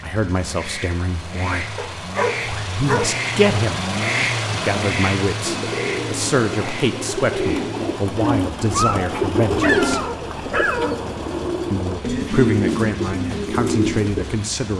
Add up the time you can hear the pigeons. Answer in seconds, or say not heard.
9 s.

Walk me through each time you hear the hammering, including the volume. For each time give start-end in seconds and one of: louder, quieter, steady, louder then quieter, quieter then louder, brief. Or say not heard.
not heard.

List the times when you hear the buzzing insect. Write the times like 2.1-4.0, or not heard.
not heard.